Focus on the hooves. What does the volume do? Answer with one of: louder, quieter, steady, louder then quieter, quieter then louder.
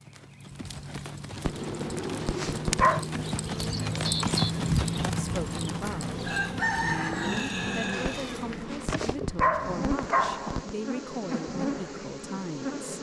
louder then quieter.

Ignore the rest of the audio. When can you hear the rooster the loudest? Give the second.
7 s.